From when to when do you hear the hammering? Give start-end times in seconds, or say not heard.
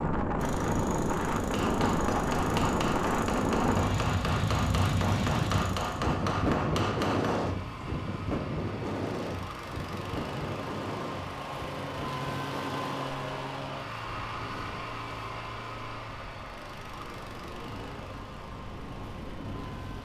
1.4-7.5.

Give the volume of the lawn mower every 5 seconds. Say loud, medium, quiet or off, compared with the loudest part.
medium, medium, loud, medium.